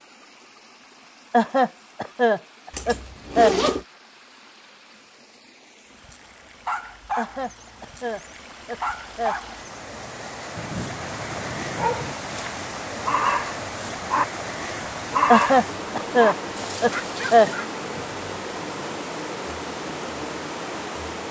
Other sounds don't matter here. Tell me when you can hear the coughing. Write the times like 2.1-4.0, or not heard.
1.3-3.5, 7.2-9.3, 15.3-17.5.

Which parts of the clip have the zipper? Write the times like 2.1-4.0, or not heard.
2.7-3.9.